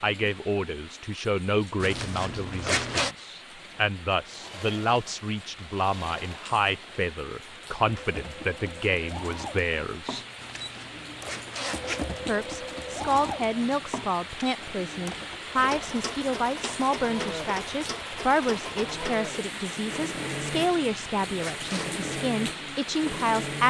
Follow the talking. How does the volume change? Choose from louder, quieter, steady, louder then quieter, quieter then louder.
steady.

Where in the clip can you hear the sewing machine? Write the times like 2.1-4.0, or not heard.
3.5-23.6.